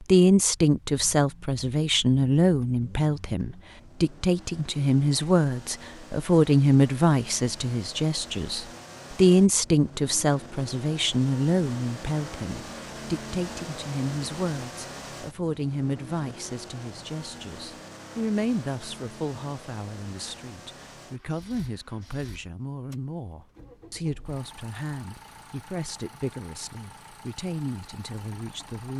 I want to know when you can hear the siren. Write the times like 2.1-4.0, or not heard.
not heard.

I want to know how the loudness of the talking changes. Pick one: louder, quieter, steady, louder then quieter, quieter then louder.
quieter.